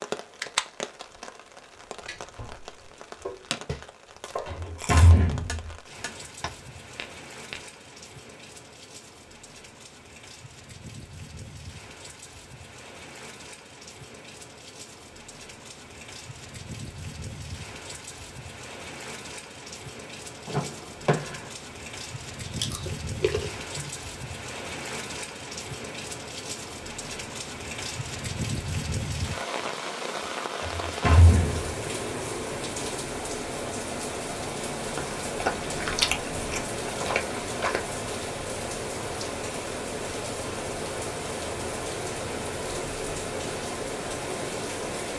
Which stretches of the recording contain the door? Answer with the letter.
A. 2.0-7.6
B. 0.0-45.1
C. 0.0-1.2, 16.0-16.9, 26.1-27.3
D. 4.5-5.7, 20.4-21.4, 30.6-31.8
D.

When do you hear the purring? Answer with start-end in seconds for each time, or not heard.
not heard.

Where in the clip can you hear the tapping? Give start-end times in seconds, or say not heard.
2.0-7.6.